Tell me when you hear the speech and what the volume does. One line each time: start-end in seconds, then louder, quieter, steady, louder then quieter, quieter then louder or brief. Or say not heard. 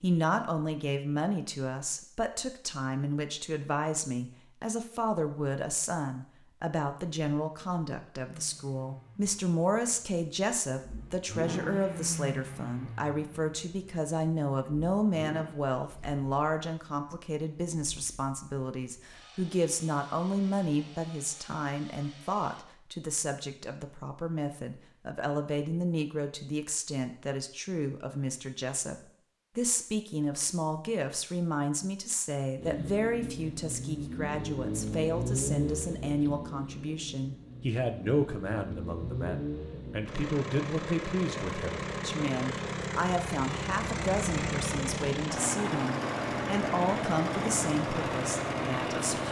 0.0-28.9 steady
29.6-49.2 steady.